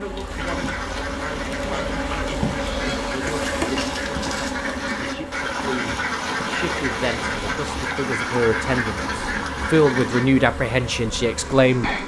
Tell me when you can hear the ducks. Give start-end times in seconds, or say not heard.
0.3-10.3.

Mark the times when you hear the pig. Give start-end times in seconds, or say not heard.
1.6-3.2.